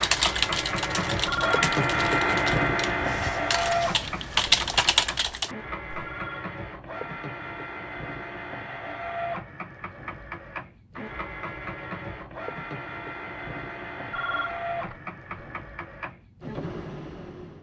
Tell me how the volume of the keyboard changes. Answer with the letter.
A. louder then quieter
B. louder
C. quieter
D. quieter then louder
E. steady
D.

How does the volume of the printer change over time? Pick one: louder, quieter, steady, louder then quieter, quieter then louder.
quieter.